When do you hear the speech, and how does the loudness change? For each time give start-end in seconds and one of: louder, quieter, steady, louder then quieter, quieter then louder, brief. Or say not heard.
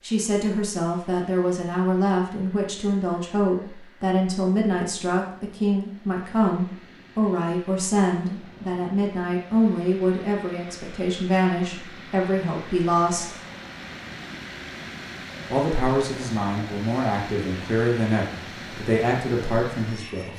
0.0-13.2 steady
15.5-20.3 steady.